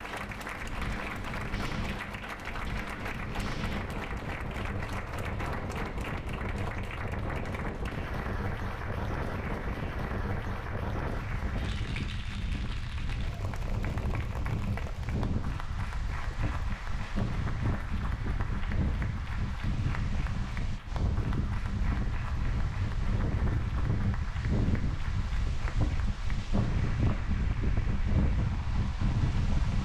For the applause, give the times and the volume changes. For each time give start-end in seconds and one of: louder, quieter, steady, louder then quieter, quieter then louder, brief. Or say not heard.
0.0-29.8 quieter.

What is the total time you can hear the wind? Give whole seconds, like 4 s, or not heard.
30 s.